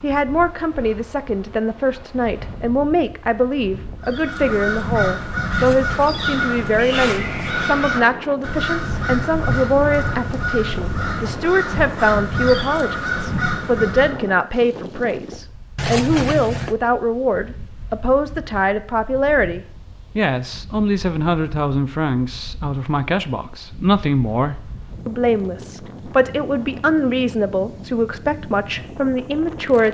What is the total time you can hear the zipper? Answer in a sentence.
You can hear the zipper for 3 seconds altogether.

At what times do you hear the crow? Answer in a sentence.
The crow can be heard from 4.0 to 14.3 s.